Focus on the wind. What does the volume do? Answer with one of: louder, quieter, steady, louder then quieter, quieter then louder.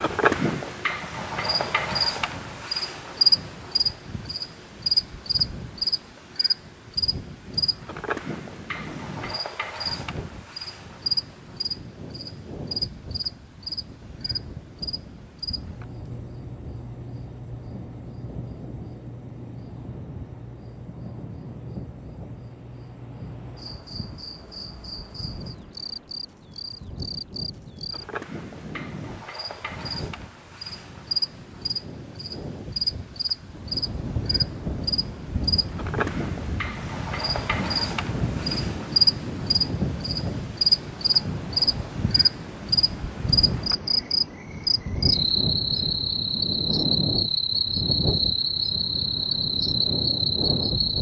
louder.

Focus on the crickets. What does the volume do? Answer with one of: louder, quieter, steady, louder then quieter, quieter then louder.
quieter then louder.